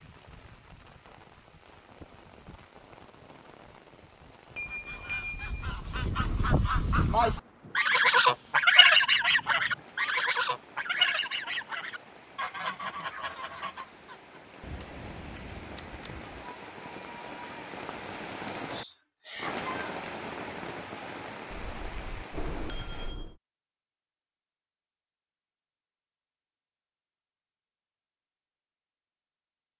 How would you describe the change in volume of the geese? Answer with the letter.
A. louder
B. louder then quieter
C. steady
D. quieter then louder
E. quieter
B.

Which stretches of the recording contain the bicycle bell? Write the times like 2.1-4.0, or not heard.
4.5-5.6, 14.6-16.4, 21.5-23.4.